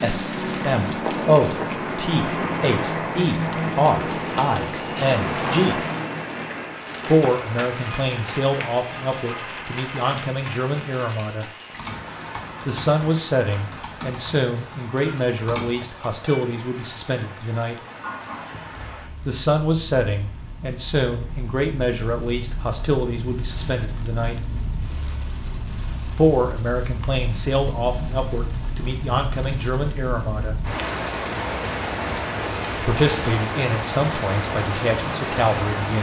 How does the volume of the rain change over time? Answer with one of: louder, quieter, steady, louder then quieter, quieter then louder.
quieter then louder.